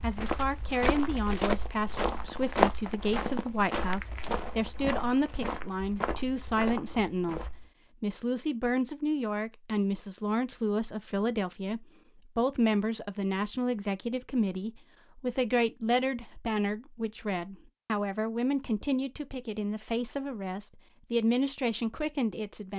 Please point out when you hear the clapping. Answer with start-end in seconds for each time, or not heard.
not heard.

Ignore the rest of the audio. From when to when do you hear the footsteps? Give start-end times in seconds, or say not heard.
0.0-7.7.